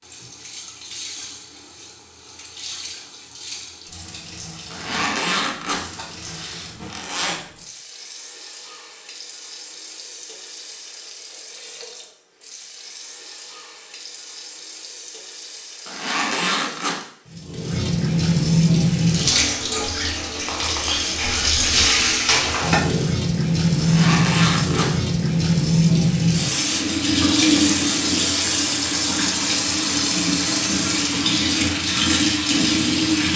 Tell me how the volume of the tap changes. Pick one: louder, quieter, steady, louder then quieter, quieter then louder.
louder.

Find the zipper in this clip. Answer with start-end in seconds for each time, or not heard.
4.7-7.4, 15.8-17.1, 23.8-24.9.